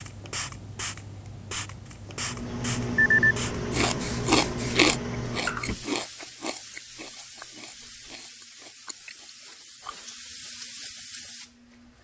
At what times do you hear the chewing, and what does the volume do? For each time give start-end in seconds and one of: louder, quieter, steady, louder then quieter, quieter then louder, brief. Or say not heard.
3.7-10.2 quieter.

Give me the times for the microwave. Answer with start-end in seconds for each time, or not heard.
2.0-5.8.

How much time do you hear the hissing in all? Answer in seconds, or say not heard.
12 s.